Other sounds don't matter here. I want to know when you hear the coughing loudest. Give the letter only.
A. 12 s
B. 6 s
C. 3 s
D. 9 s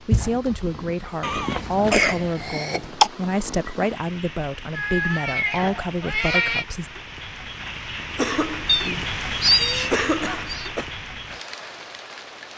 C.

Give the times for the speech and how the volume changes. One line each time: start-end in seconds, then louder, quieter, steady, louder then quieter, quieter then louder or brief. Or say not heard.
0.0-6.9 steady.